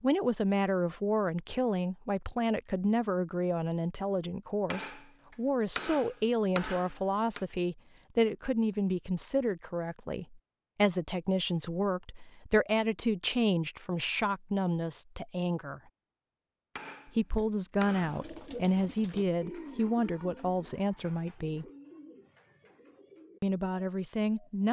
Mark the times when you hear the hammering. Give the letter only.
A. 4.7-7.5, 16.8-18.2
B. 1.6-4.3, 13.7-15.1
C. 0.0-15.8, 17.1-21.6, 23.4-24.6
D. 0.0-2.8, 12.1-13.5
A.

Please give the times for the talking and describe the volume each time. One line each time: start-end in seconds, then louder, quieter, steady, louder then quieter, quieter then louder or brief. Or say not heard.
0.0-15.8 steady
17.1-21.6 steady
23.4-24.6 brief.